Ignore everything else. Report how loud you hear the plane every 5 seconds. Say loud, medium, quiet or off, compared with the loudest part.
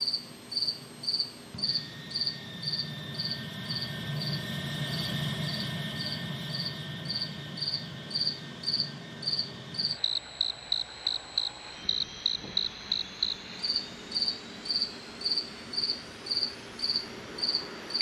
loud, loud, medium, medium.